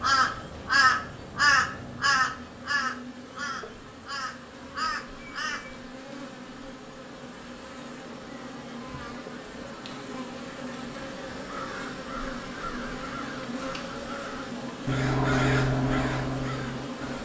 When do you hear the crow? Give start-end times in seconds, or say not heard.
0.0-5.9, 11.4-17.1.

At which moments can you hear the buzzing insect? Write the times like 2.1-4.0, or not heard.
0.0-17.1.